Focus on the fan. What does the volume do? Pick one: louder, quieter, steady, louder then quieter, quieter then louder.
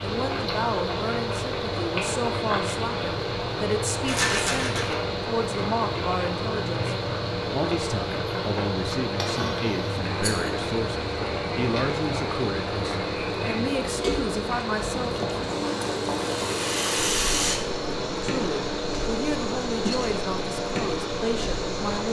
steady.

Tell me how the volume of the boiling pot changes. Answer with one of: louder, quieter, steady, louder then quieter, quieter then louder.
steady.